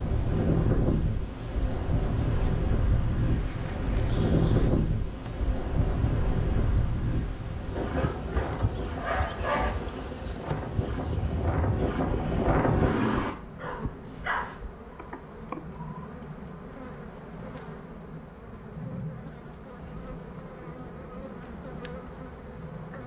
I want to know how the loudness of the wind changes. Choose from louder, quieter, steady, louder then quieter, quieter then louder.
quieter then louder.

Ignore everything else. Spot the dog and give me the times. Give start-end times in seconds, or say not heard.
7.8-9.7, 13.6-14.6.